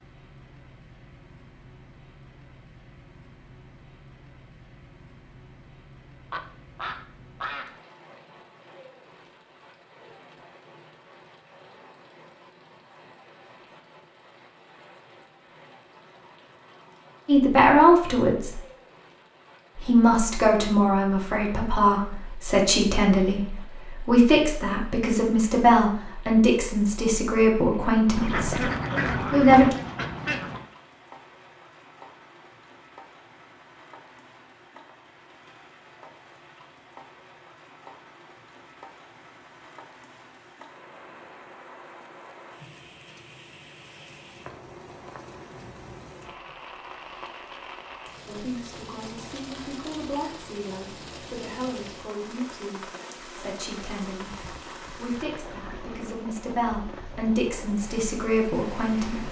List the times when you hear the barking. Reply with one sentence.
You can't hear the barking here.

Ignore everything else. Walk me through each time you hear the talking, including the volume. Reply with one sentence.
You can hear the talking briefly from 17.2 to 18.6 s; from 19.8 to 28.6 s, at a steady volume; briefly from 29.3 to 29.8 s; and from 48.2 to 59.2 s, getting louder.